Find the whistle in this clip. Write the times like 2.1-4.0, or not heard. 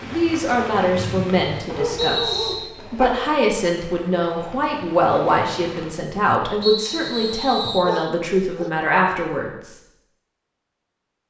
0.9-2.5, 6.6-7.9.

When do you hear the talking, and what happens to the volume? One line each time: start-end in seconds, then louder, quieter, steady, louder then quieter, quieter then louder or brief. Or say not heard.
0.0-9.8 steady.